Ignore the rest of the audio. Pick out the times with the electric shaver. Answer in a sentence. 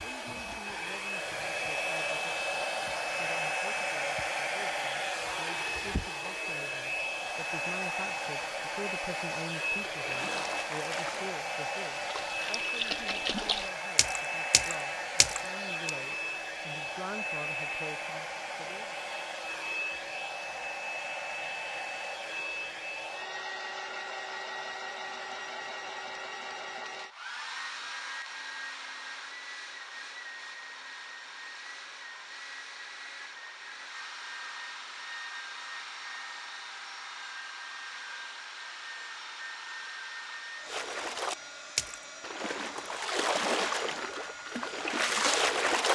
You can't hear the electric shaver here.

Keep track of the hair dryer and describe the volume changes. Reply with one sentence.
The loudness of the hair dryer goes down.